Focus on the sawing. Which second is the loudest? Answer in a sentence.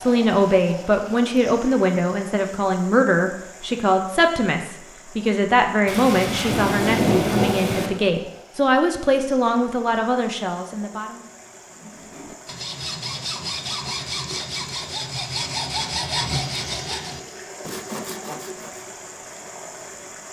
The volume of the sawing peaks at 16 seconds.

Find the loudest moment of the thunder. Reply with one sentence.
The volume of the thunder peaks at 7 seconds.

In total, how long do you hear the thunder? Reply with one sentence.
The thunder can be heard for 2 seconds in total.